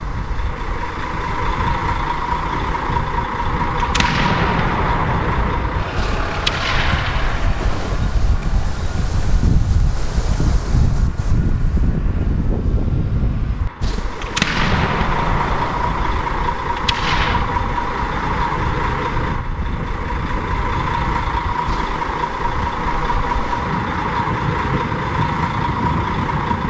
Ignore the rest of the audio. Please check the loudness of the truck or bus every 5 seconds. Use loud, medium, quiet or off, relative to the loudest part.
loud, medium, medium, loud, loud, loud.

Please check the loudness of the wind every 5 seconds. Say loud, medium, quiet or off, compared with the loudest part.
medium, loud, loud, medium, medium, loud.